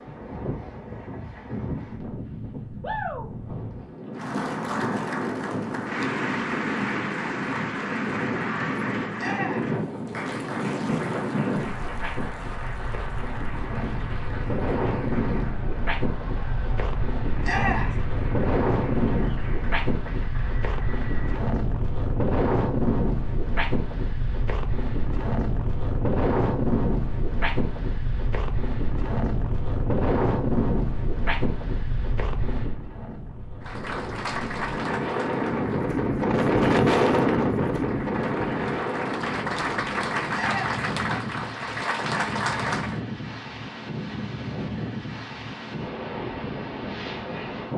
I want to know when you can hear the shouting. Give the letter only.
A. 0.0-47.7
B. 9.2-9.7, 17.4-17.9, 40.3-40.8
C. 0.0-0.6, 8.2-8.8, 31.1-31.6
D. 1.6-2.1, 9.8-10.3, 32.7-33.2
B.